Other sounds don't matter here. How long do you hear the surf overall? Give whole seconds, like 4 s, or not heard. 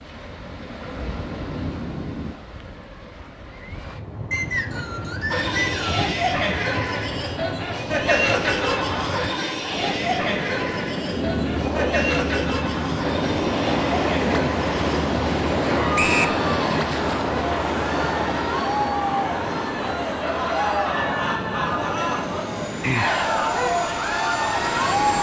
25 s.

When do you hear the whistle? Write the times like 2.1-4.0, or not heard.
4.3-6.0, 15.9-16.4.